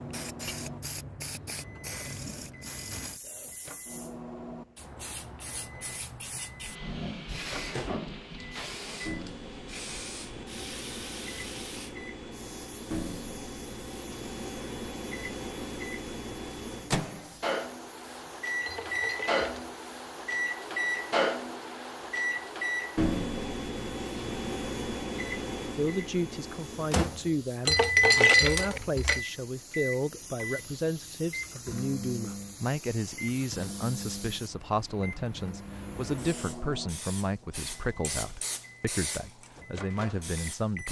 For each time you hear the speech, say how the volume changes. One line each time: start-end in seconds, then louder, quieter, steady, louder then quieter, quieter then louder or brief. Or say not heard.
25.6-40.8 steady.